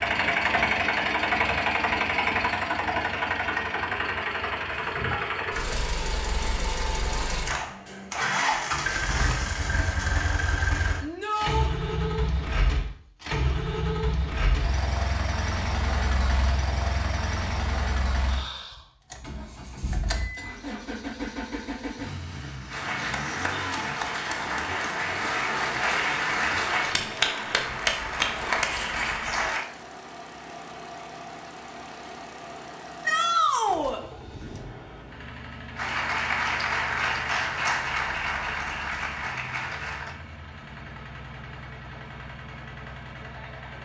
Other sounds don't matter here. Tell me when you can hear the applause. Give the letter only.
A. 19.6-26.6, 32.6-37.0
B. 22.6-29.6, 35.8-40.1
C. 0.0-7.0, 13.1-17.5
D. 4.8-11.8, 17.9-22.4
B.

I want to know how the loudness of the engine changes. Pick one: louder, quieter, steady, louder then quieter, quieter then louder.
quieter.